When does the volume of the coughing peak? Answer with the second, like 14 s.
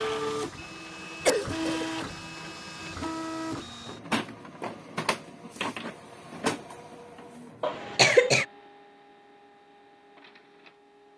8 s.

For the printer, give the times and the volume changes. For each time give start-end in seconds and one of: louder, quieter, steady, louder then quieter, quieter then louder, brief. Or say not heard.
0.0-11.1 quieter.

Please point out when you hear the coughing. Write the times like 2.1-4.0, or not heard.
1.2-1.9, 7.6-8.4.